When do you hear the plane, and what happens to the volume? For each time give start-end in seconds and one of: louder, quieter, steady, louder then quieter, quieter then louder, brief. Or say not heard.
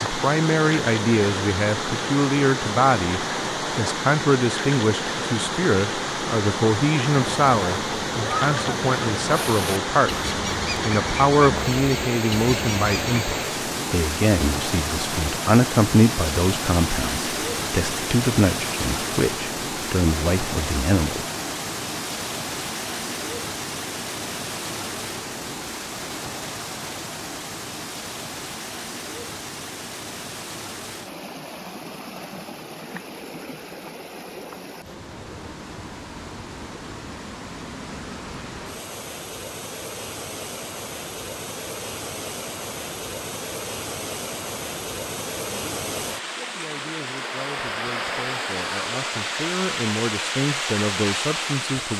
not heard.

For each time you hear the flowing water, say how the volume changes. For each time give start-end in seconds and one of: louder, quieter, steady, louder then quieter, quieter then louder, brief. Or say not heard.
0.0-51.9 quieter then louder.